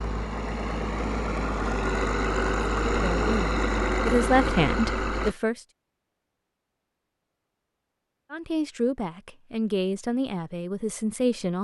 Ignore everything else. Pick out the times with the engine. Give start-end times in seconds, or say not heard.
0.0-5.3.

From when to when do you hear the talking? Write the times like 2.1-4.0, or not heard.
2.9-5.6, 8.3-11.5.